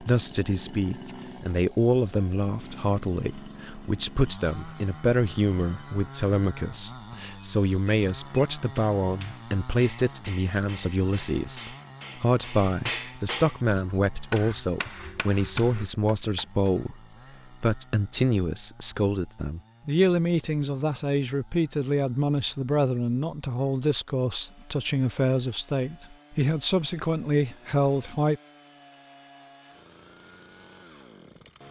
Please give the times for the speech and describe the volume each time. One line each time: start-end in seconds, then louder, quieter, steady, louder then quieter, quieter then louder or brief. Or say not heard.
0.0-17.0 steady
17.6-28.4 steady.